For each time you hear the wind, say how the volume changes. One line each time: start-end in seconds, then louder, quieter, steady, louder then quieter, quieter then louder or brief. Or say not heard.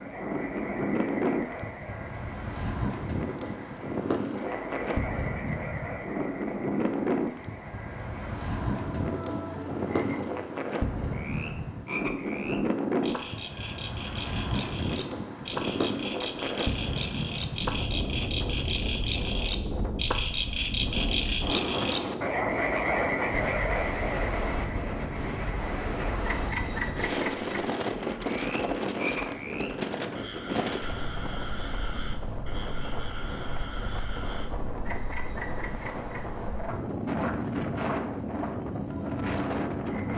0.0-40.1 steady.